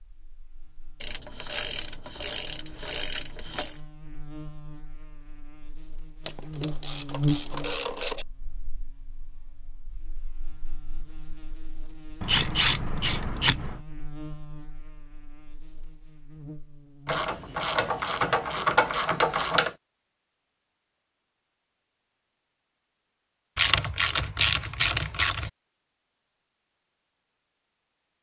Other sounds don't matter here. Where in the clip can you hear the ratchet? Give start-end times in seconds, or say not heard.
1.0-3.8, 6.2-8.2, 12.2-13.8, 17.1-19.8, 23.6-25.5.